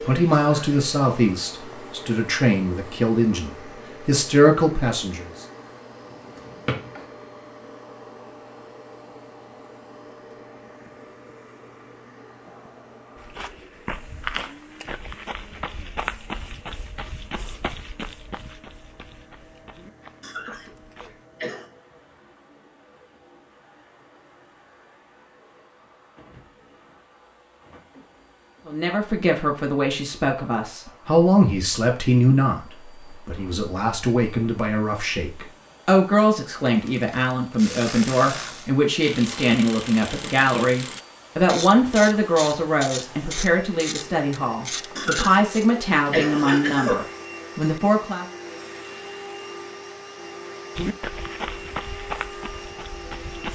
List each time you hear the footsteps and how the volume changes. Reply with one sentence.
The footsteps can be heard from 13.2 to 21.2 s, getting quieter; and briefly from 50.8 to 53.4 s.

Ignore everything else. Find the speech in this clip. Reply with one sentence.
You can hear the speech from 0.0 to 5.5 s and from 28.6 to 48.2 s.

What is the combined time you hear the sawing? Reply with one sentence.
You can't hear the sawing here.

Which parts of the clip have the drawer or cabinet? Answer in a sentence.
You can hear the drawer or cabinet from 6.1 to 6.9 s.